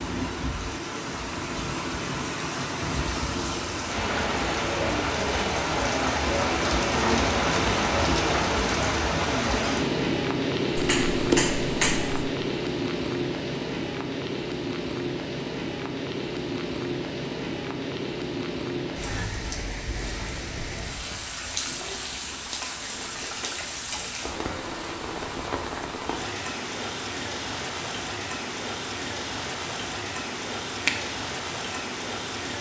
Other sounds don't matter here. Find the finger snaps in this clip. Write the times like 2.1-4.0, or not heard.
10.8-12.2.